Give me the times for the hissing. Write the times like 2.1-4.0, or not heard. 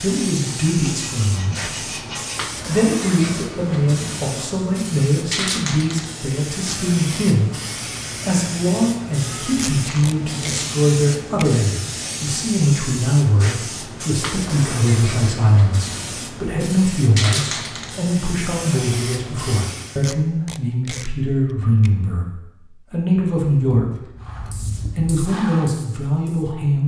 0.0-20.1, 24.2-26.6.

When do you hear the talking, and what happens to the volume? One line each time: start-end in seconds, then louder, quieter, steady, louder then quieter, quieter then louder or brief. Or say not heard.
0.0-1.9 brief
2.6-26.8 steady.